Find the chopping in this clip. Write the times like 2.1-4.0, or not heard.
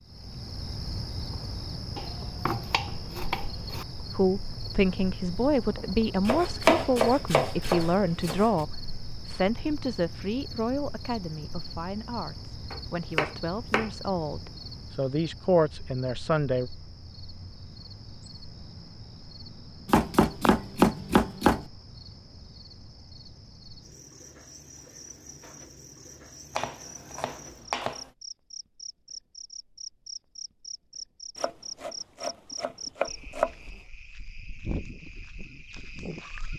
1.9-3.9, 6.2-8.5, 12.7-13.9, 19.9-21.6, 26.6-28.1, 31.4-33.5.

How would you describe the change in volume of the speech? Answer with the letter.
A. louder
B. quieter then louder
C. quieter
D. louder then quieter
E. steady
B.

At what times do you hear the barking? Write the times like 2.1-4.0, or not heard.
not heard.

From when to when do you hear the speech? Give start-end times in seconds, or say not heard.
4.2-16.7.